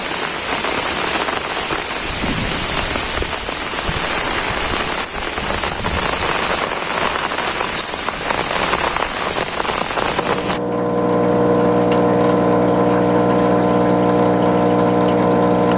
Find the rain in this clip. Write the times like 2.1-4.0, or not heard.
0.0-10.6.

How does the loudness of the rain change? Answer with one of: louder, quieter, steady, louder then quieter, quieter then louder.
steady.